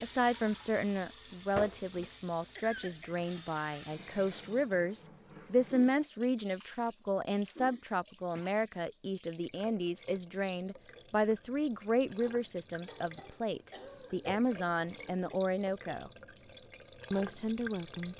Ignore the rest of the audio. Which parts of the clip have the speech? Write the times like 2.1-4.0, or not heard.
0.0-16.1, 17.1-18.1.